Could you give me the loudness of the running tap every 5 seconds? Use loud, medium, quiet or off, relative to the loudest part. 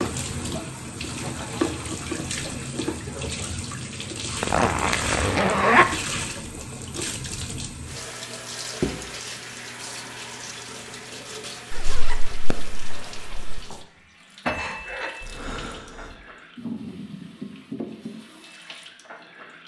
loud, loud, medium, medium.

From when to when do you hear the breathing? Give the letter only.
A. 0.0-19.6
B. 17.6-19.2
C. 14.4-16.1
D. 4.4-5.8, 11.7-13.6
C.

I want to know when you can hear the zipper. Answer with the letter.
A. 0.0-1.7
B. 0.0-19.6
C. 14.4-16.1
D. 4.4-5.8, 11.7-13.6
D.